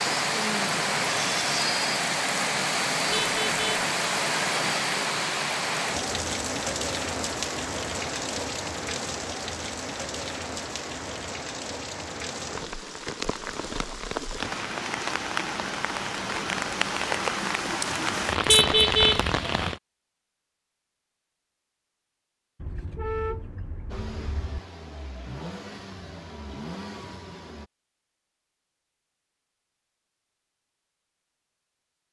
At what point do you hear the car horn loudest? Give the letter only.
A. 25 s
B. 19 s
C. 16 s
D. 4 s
B.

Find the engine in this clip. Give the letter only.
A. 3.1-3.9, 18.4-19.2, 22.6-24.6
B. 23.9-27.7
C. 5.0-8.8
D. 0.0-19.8
B.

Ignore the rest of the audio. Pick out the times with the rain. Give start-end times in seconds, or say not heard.
0.0-19.8.